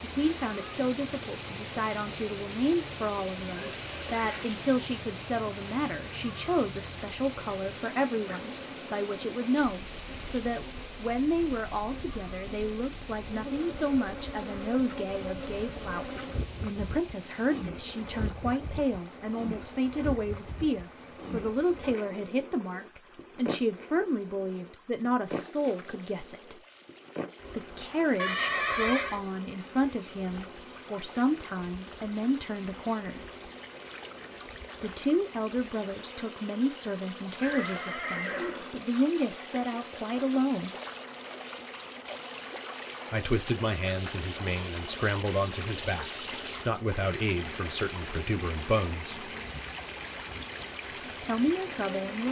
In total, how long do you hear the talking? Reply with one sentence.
You can hear the talking for 45 seconds altogether.